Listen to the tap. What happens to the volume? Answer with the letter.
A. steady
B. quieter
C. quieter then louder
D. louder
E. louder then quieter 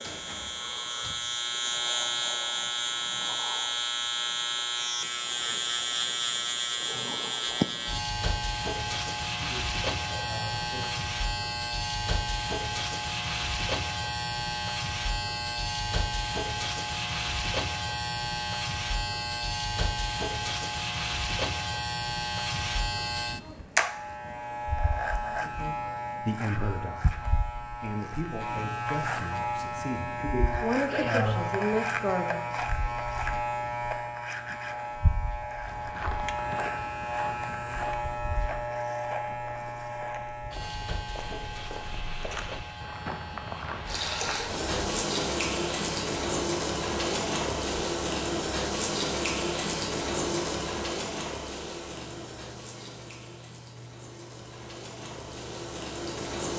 B.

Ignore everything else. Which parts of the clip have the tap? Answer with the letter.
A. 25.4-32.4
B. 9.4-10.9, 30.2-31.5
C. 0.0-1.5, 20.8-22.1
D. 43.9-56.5
D.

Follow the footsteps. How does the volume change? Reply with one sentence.
The volume of the footsteps goes down, then up.